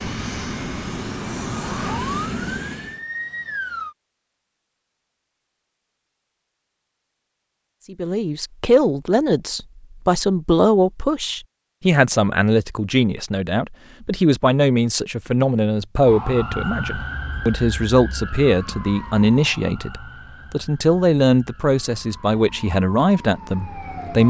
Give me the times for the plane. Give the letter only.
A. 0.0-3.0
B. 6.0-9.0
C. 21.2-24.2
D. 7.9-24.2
A.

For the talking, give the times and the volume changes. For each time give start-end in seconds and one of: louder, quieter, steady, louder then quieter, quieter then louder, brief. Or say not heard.
7.9-24.2 steady.